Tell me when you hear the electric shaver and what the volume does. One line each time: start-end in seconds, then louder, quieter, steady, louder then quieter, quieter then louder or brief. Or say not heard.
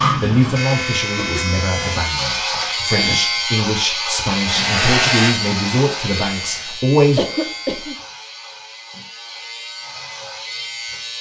0.0-11.1 quieter.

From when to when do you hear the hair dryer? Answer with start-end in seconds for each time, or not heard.
4.3-6.8.